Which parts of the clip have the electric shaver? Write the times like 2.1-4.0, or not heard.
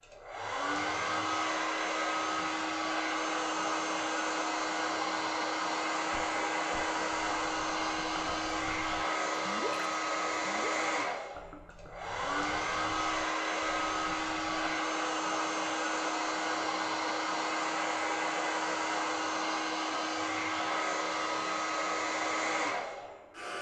not heard.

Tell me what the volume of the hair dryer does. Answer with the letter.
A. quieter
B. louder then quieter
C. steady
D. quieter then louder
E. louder
C.